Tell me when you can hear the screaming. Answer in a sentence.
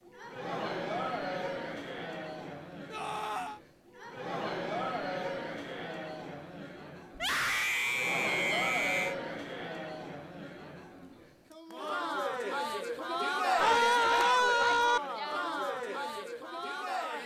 You can hear the screaming from 2.9 to 3.6 s, from 7.2 to 9.2 s and from 13.6 to 15.0 s.